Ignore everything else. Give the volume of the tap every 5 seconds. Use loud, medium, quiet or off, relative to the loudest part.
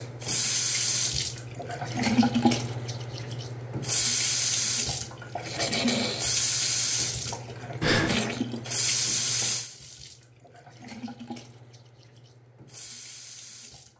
loud, loud, quiet.